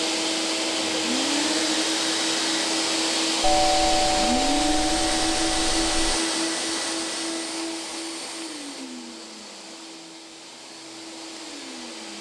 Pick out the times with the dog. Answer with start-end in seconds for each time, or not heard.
not heard.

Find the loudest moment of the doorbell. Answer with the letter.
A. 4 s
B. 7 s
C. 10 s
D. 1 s
A.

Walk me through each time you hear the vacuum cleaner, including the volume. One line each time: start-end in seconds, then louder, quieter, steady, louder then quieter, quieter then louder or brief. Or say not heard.
0.0-12.1 quieter.